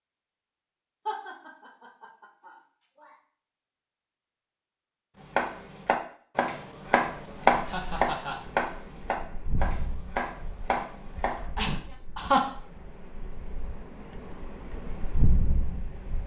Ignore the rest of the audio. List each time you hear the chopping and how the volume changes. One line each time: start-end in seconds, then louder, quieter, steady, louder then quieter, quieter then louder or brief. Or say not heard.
5.2-11.4 louder then quieter.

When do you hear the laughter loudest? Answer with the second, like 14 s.
12 s.